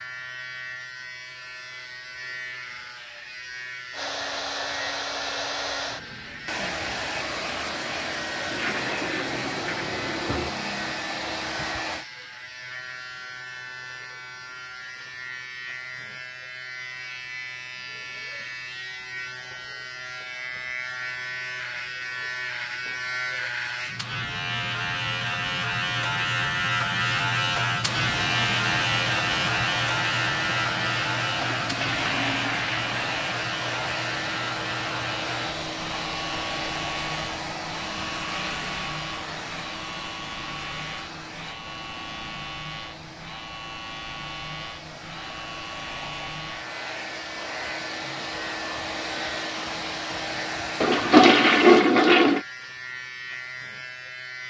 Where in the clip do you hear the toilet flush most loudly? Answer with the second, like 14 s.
52 s.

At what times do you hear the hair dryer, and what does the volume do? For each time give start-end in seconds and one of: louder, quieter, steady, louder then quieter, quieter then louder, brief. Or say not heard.
3.9-12.1 steady
27.8-51.8 quieter then louder.